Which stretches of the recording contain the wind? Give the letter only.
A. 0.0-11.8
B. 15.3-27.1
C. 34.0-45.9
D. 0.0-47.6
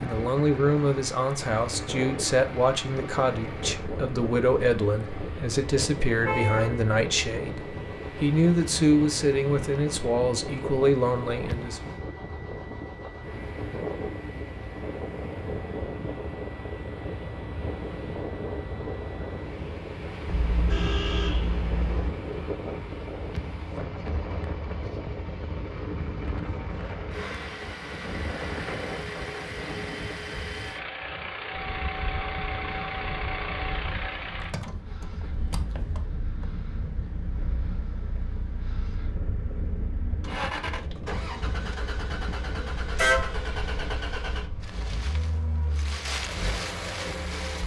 D.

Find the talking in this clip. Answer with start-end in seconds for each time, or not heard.
0.0-11.8.